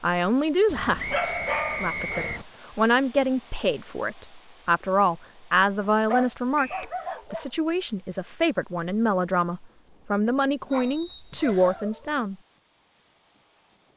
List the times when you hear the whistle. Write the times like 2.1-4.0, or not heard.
1.0-2.4, 6.5-7.0, 10.7-11.8.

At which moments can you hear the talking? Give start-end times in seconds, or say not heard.
0.0-12.3.